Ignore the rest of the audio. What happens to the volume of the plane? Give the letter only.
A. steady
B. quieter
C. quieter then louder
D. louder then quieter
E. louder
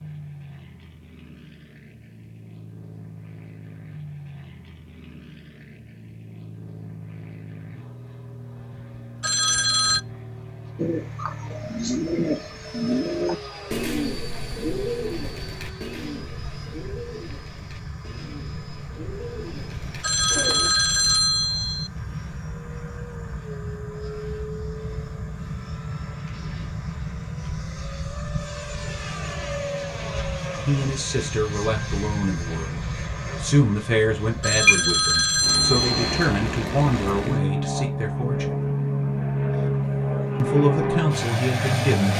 E.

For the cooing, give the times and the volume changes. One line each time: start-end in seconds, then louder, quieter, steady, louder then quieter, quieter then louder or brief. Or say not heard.
10.8-20.7 quieter.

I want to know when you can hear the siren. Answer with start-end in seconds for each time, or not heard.
not heard.